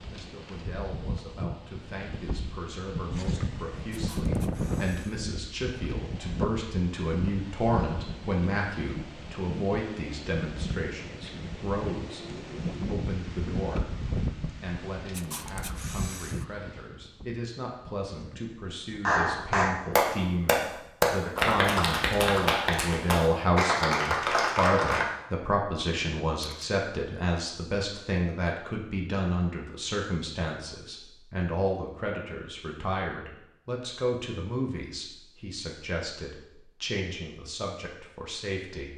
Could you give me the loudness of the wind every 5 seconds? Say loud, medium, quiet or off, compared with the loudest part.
loud, loud, loud, medium, off, off, off, off.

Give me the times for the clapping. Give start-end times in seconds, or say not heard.
19.1-25.1.